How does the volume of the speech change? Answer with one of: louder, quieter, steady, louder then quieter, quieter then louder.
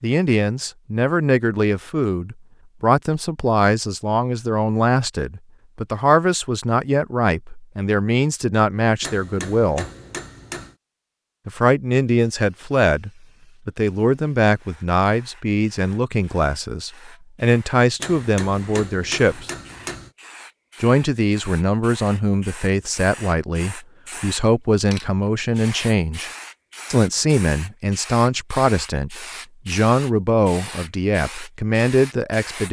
steady.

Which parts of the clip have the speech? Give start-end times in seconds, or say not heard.
0.0-9.9, 11.4-19.5, 20.8-26.3, 26.9-32.6.